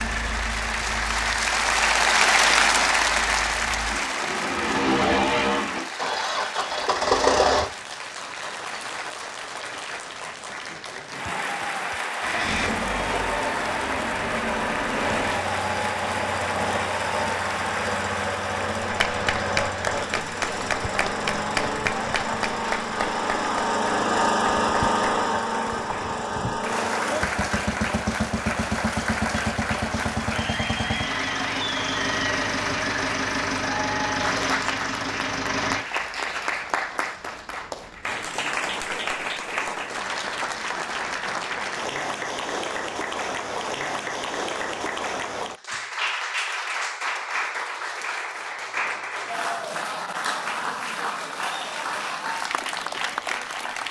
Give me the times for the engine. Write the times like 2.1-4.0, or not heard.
0.0-7.7, 12.2-35.9.